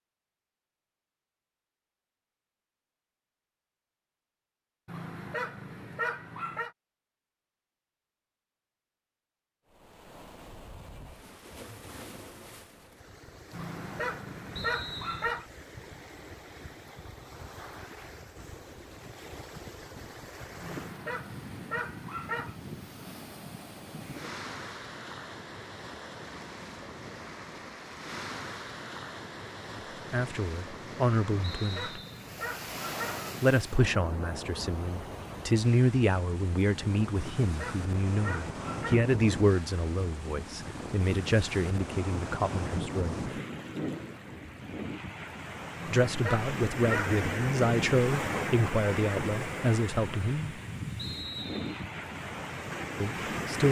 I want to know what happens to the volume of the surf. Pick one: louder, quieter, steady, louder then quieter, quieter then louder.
louder.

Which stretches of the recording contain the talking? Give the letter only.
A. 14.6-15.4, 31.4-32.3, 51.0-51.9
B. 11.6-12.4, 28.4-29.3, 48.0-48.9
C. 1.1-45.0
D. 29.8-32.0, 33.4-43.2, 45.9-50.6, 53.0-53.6
D.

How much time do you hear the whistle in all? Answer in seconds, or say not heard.
3 s.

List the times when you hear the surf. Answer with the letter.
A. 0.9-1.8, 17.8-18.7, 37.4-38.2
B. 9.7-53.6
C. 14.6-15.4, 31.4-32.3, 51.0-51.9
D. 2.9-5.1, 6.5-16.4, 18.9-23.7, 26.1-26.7
B.